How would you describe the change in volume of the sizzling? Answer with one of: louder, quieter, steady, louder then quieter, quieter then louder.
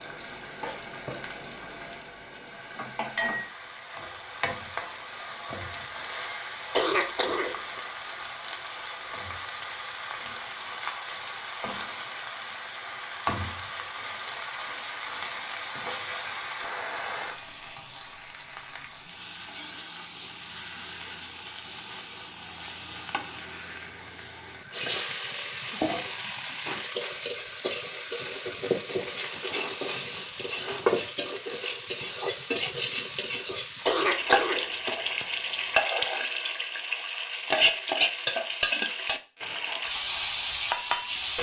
louder.